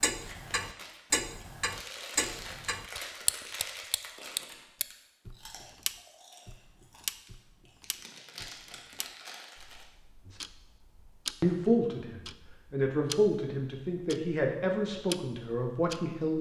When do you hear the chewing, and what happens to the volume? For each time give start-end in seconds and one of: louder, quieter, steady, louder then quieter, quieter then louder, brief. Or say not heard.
0.1-9.8 quieter then louder.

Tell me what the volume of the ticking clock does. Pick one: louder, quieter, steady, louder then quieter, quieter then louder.
quieter.